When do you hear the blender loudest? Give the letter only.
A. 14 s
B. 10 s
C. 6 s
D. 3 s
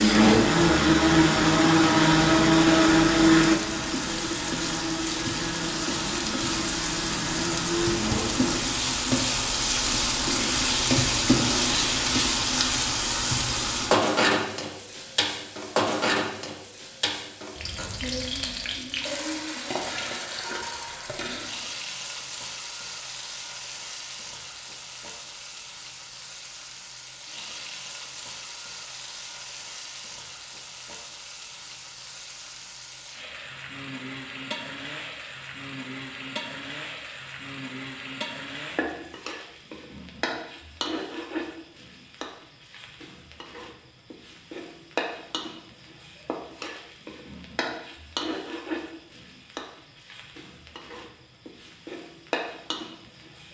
D.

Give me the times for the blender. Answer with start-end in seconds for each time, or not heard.
0.0-8.6.